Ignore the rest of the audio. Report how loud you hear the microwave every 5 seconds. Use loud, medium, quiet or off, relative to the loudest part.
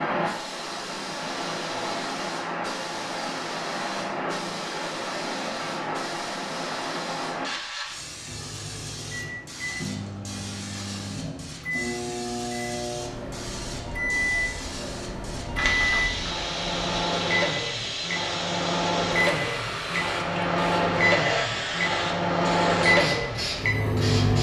off, quiet, medium, loud, loud.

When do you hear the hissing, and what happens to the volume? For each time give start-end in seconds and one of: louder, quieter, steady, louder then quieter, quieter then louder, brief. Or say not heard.
0.0-24.3 quieter then louder.